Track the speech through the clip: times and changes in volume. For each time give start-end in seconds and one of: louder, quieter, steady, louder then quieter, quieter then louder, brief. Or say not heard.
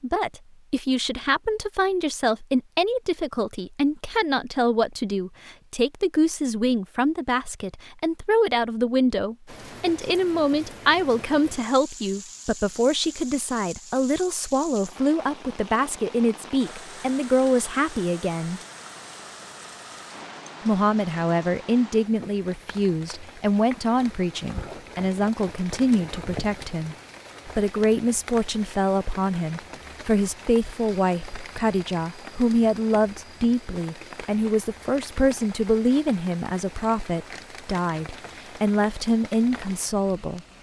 0.0-18.6 steady
20.6-40.4 steady.